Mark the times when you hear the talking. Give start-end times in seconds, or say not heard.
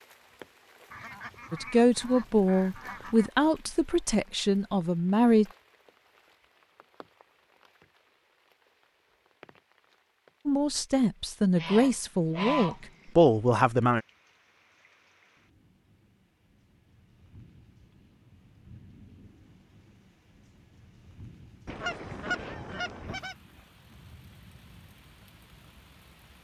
1.5-5.5, 10.4-14.0.